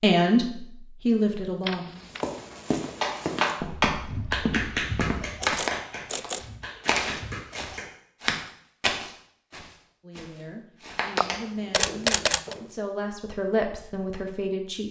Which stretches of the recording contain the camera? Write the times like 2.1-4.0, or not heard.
1.6-2.2, 5.4-6.5, 11.2-12.6.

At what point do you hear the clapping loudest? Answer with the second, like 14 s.
4 s.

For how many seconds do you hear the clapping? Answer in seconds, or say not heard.
5 s.